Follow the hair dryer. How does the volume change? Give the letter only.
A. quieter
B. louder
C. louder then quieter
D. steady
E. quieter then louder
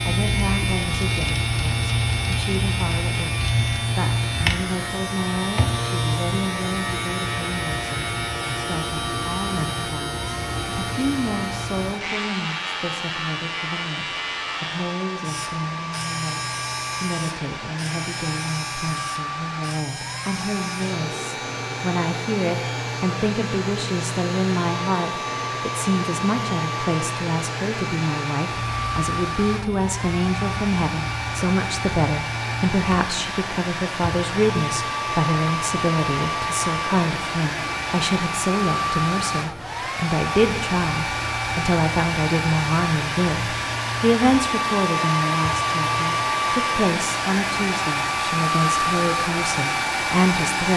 B.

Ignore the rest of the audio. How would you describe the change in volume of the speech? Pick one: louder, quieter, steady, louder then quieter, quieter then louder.
louder.